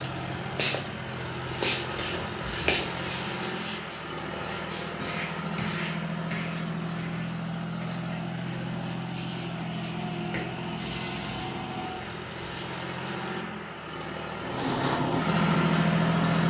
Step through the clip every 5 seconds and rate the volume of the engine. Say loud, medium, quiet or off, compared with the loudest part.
medium, medium, medium, loud.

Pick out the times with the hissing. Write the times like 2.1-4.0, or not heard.
0.0-3.5, 14.4-16.4.